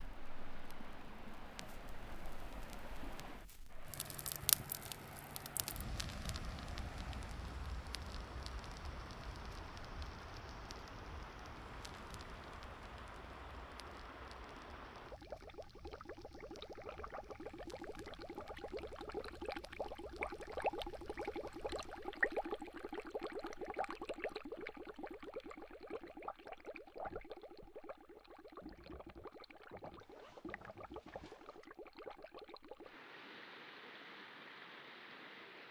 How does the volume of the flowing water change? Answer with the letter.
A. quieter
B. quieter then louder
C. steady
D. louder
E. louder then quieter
E.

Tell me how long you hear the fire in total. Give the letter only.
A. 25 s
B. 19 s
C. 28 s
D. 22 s
D.